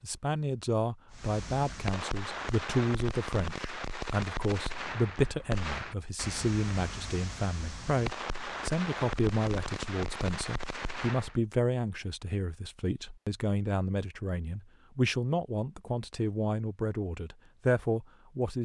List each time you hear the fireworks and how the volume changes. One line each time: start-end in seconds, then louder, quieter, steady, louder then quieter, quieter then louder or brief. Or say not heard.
1.1-11.3 steady.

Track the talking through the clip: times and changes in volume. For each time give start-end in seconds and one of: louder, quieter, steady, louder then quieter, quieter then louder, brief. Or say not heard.
0.0-18.5 steady.